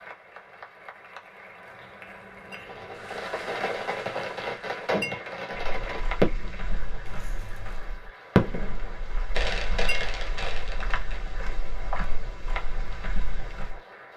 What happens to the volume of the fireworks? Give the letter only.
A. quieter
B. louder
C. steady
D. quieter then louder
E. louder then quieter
E.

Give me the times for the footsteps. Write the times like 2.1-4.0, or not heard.
5.7-13.8.